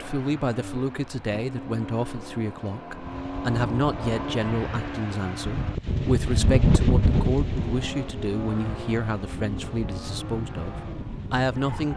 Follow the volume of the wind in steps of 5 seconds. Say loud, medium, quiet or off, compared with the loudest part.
medium, loud, medium.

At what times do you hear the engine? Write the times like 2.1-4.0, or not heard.
0.0-11.9.